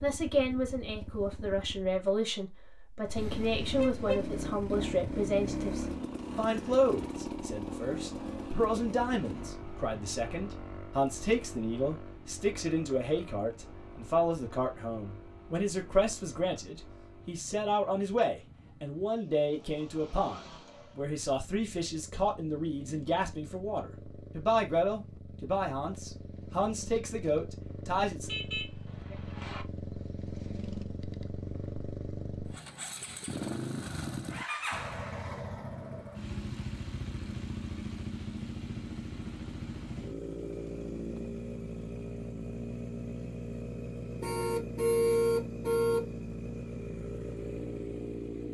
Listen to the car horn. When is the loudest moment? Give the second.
45 s.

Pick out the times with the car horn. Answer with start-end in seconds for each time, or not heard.
3.1-4.3, 28.2-29.6, 44.2-46.0.